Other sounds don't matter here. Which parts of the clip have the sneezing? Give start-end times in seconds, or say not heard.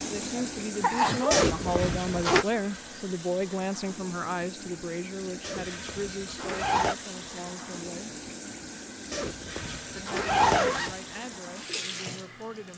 0.3-1.4.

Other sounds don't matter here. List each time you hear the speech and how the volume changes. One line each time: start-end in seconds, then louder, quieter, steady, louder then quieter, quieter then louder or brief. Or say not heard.
0.0-8.2 quieter
9.9-12.7 brief.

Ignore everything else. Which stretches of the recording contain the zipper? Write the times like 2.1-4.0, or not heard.
1.3-2.5, 5.4-7.0, 9.1-10.9.